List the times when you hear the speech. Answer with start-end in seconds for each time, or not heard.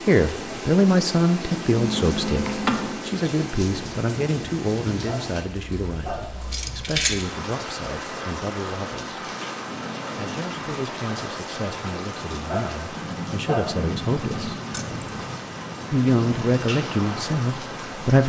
0.1-9.2, 10.2-14.6, 15.9-18.2.